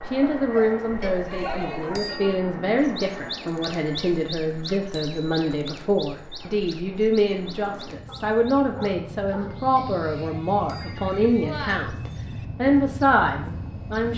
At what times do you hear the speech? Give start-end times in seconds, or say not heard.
0.1-14.1.